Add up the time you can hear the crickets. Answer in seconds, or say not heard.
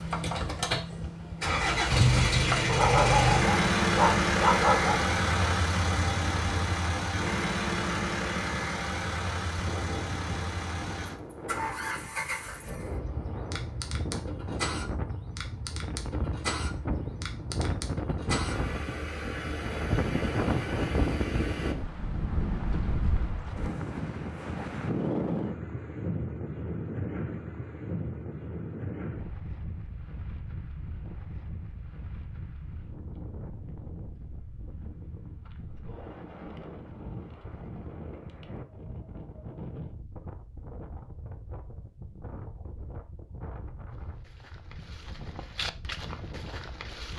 not heard.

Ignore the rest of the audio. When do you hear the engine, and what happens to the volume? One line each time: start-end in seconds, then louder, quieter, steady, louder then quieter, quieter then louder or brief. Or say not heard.
0.0-21.8 quieter.